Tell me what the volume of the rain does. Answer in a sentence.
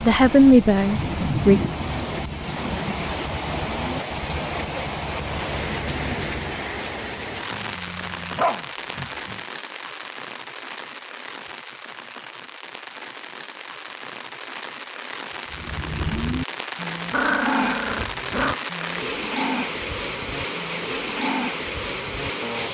The loudness of the rain goes down, then up.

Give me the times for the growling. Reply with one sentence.
You can hear the growling from 7.5 to 9.4 s and from 17.1 to 18.6 s.